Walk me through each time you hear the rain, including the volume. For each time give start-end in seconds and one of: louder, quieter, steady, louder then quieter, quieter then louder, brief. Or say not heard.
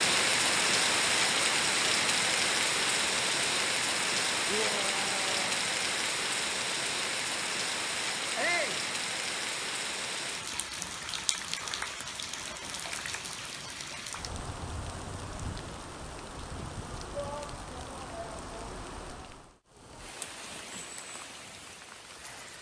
0.0-22.5 quieter.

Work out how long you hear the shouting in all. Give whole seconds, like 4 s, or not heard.
3 s.